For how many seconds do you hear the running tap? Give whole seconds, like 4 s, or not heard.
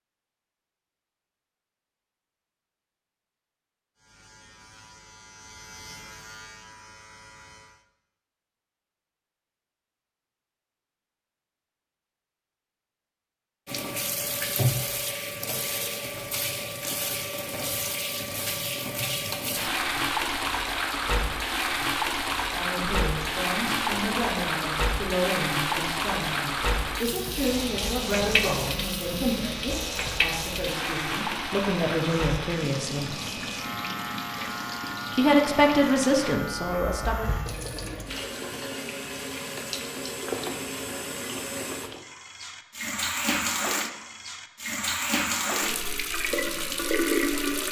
34 s.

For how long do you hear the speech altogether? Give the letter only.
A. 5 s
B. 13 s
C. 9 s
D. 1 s
B.